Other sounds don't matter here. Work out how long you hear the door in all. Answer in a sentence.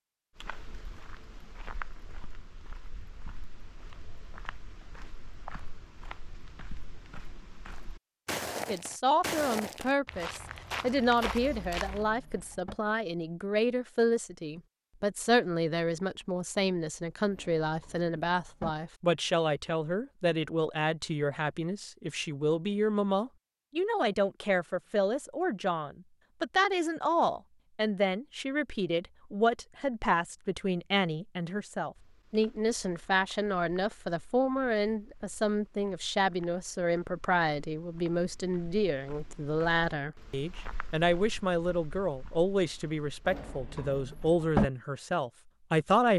The door can be heard for 4 seconds in total.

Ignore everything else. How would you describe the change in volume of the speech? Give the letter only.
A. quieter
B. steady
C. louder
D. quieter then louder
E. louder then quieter
B.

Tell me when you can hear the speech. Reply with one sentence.
The speech can be heard from 8.7 to 46.1 s.